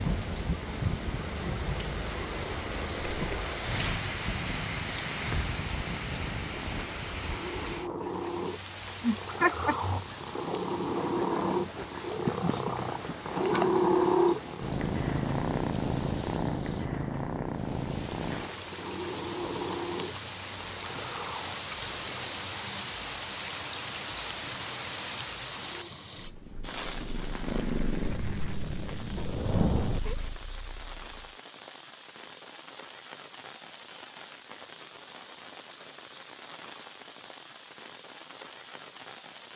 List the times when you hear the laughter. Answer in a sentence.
You can hear the laughter from 9.0 to 9.9 s.